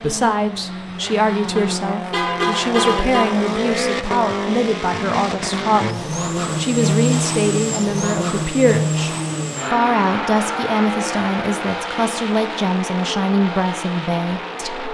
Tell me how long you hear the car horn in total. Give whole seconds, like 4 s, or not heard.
2 s.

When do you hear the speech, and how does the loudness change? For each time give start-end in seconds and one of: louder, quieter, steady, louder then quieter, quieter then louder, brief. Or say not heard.
0.0-14.9 steady.